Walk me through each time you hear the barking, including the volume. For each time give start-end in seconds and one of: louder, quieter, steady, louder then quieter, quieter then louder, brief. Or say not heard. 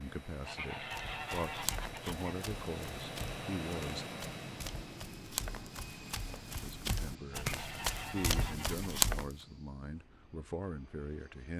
not heard.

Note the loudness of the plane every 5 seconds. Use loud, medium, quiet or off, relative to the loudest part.
loud, medium, quiet.